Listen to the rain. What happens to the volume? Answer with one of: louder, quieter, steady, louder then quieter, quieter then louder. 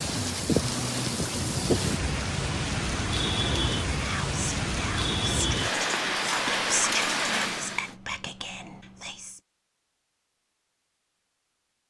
steady.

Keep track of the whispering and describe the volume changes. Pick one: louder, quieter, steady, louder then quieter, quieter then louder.
louder then quieter.